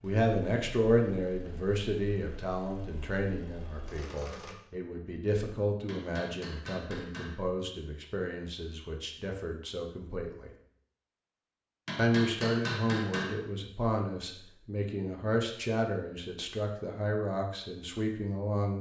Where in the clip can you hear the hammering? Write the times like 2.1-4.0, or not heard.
5.8-7.4, 11.8-13.4.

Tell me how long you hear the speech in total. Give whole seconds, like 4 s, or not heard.
17 s.